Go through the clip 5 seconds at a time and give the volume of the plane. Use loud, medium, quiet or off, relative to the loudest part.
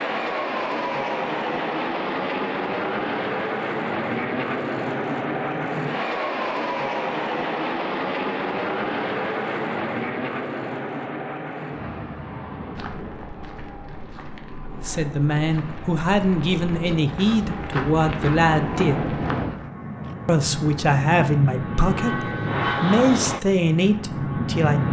loud, loud, medium, medium, loud.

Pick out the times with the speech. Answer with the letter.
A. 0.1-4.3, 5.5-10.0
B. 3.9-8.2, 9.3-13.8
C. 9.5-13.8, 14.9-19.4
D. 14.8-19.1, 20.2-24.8
D.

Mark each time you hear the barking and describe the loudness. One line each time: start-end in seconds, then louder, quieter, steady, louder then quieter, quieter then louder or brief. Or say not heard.
not heard.